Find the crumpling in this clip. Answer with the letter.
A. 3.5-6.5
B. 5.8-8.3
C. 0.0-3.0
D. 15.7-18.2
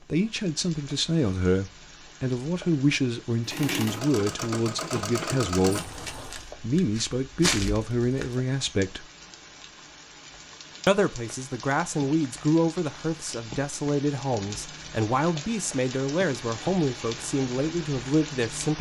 B.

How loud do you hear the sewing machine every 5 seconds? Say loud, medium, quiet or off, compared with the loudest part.
loud, loud, off, off.